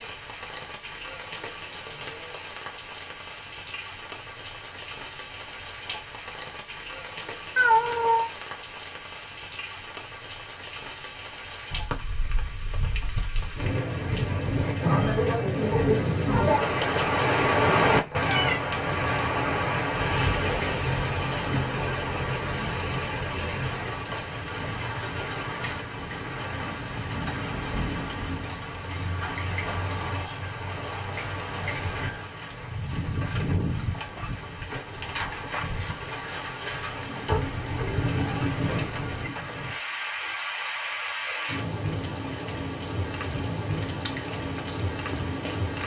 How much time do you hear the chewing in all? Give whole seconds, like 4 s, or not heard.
2 s.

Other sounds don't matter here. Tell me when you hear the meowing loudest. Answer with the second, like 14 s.
8 s.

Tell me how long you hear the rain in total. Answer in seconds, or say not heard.
46 s.